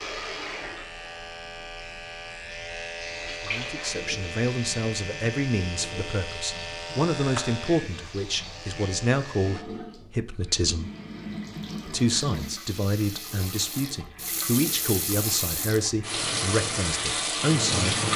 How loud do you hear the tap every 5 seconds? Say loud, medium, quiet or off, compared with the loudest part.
medium, quiet, medium, loud.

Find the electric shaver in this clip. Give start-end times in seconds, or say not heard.
0.0-9.7.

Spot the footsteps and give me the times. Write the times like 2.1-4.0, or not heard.
not heard.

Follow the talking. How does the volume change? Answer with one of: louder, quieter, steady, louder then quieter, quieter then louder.
steady.